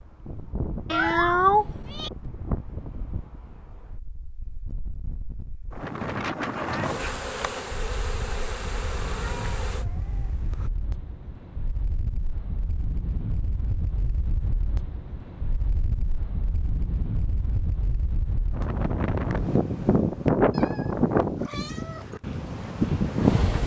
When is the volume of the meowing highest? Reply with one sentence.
The volume of the meowing peaks at 1 second.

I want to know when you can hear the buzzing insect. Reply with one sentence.
The buzzing insect can be heard from 6.8 to 9.8 s.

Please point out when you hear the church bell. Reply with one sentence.
The church bell can't be heard in this clip.